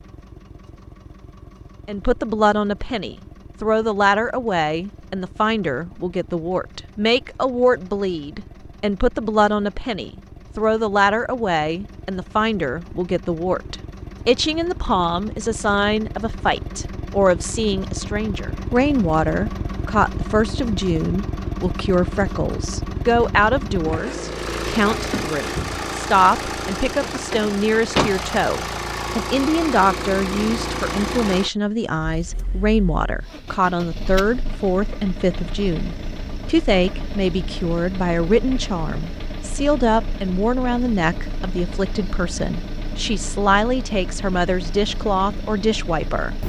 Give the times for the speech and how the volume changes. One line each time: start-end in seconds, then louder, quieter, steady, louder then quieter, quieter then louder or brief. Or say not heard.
1.9-46.4 steady.